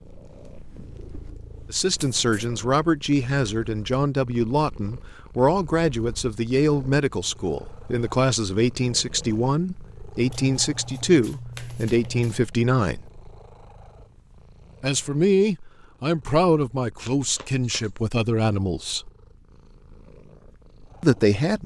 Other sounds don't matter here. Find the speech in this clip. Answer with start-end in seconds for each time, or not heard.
1.7-13.0, 14.8-19.1, 21.0-21.6.